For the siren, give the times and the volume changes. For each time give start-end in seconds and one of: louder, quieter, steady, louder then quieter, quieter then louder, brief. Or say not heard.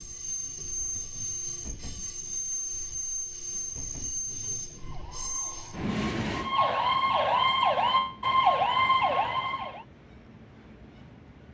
4.8-9.8 louder.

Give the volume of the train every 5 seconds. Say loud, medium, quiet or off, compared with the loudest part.
loud, loud, quiet.